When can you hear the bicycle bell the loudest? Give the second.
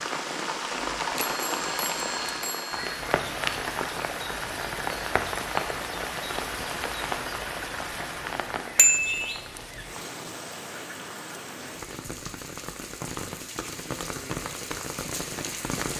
9 s.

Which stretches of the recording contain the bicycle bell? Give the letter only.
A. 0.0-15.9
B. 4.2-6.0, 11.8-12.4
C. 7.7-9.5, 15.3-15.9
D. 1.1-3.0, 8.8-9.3
D.